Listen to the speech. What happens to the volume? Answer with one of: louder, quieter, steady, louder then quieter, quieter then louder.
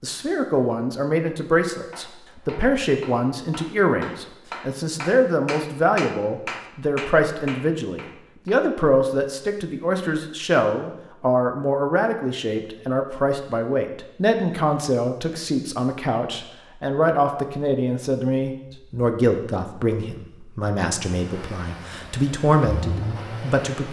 steady.